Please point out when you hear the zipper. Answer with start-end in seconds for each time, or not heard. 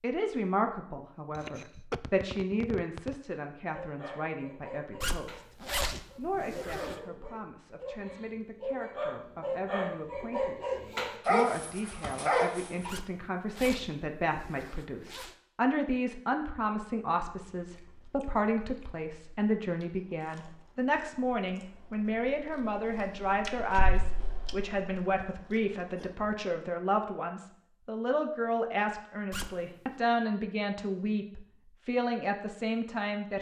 5.0-7.0, 12.8-15.3, 29.3-29.9.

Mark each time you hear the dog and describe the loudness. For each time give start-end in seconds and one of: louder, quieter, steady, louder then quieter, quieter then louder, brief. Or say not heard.
3.7-12.9 louder.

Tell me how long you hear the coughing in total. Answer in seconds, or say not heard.
2 s.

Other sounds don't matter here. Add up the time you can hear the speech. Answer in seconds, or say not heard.
33 s.